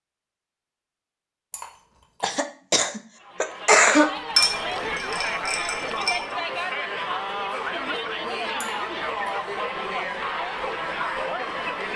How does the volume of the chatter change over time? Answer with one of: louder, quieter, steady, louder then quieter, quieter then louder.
steady.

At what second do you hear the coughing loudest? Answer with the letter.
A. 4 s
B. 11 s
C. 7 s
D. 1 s
A.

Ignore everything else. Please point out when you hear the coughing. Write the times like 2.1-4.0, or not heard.
2.2-4.1.